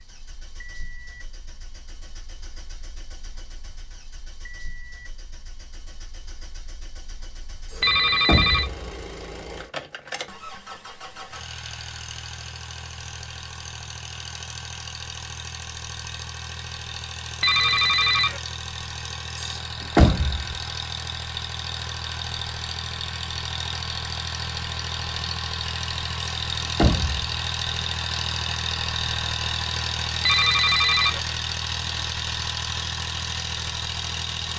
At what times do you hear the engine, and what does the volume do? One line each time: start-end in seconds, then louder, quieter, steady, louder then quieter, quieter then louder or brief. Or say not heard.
0.0-34.5 louder.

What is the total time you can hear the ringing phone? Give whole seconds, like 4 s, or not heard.
3 s.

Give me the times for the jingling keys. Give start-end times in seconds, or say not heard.
not heard.